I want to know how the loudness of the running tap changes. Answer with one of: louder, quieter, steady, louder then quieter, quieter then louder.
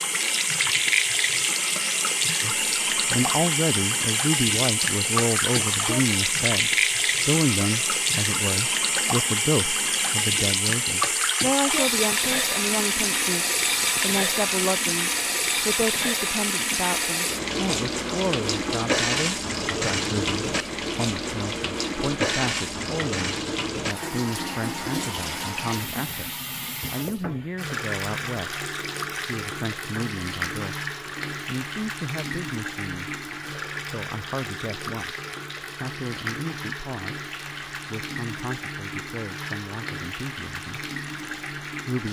quieter.